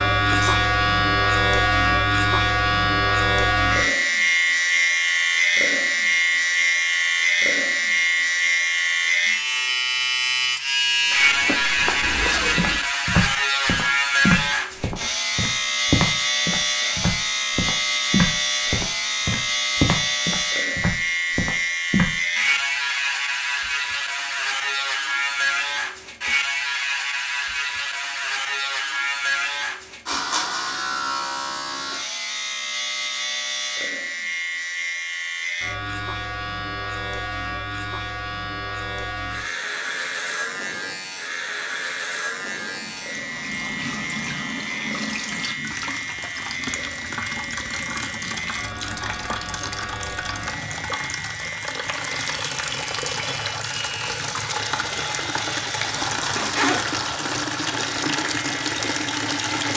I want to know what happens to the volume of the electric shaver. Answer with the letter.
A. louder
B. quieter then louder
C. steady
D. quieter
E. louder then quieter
D.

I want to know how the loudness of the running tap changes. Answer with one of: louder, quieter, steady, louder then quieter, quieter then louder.
louder.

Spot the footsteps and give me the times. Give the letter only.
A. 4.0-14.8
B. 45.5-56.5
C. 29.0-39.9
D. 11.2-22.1
D.